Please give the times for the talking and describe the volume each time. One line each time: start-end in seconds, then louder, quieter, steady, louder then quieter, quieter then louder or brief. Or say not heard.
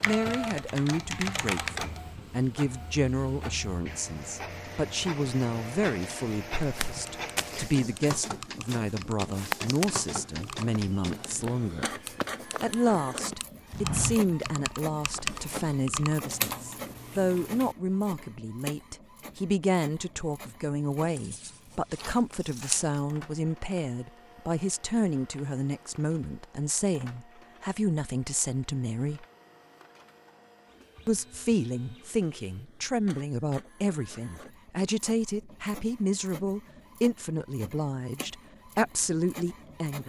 0.1-11.8 steady
12.6-29.2 steady
31.1-40.0 steady.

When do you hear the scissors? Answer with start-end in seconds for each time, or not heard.
21.0-22.9.